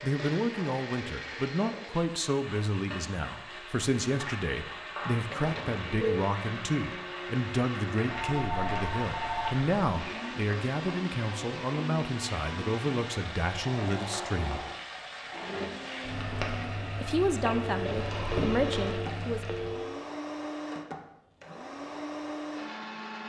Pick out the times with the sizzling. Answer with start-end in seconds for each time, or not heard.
0.0-19.9.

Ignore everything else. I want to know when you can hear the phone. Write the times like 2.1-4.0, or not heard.
5.3-6.2, 8.1-9.7, 17.4-20.1.